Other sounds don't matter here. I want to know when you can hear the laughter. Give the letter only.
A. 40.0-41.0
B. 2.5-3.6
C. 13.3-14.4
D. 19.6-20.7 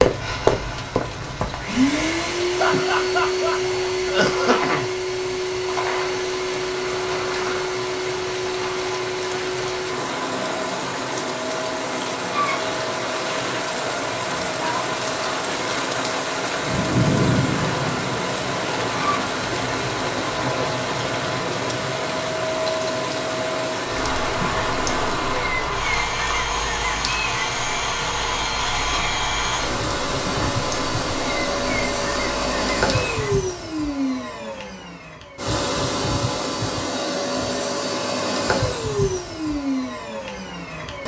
B.